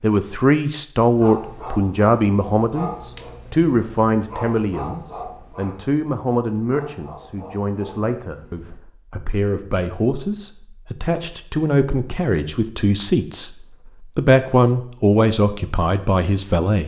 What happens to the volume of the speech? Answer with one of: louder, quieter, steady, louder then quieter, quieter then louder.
quieter then louder.